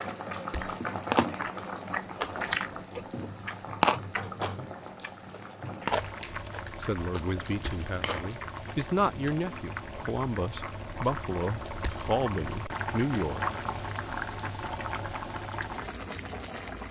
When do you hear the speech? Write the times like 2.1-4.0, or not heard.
6.8-13.4.